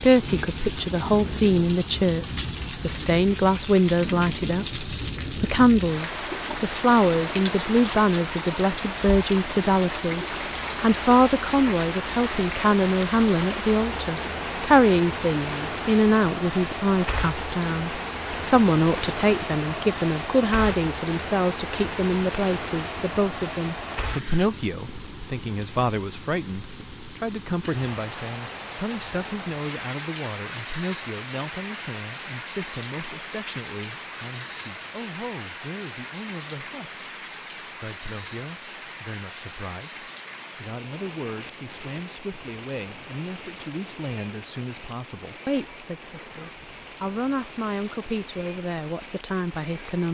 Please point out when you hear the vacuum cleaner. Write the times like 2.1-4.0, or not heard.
not heard.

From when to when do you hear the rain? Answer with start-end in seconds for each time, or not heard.
0.0-50.0.